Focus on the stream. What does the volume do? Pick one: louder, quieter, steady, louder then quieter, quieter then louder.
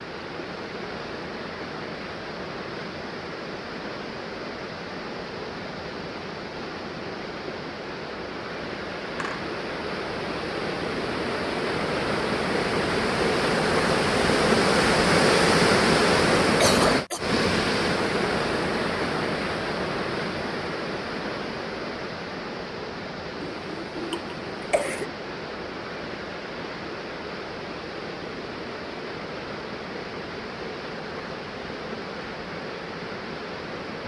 louder then quieter.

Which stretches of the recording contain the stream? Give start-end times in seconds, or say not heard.
0.0-34.0.